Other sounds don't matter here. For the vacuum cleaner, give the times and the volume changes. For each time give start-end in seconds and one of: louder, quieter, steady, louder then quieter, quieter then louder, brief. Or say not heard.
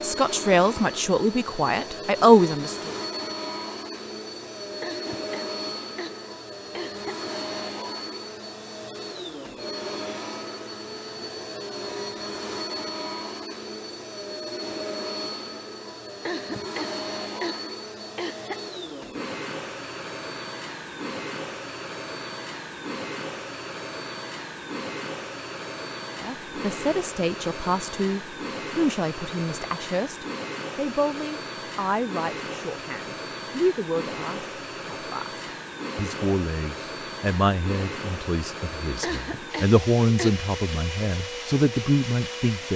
0.0-42.7 steady.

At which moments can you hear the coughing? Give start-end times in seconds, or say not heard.
4.8-7.2, 16.2-18.6, 39.0-40.5.